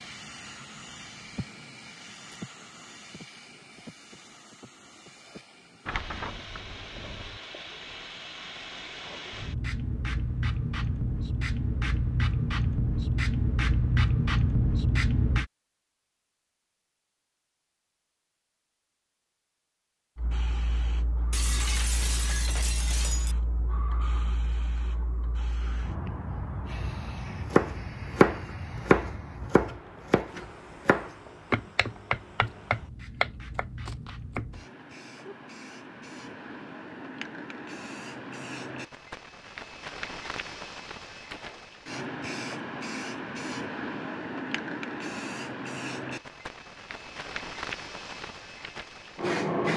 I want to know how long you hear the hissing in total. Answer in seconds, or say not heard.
45 s.